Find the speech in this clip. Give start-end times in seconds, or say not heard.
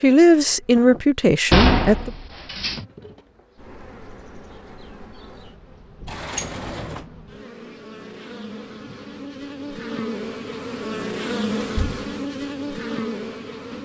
0.0-2.1.